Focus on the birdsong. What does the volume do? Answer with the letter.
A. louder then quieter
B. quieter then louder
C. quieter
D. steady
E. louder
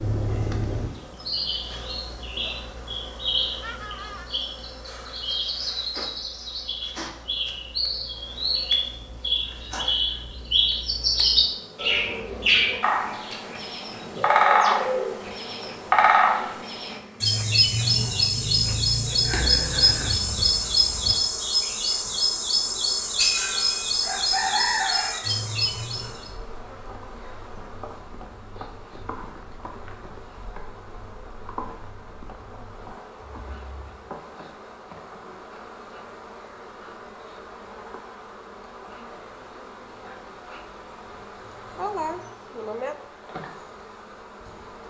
E.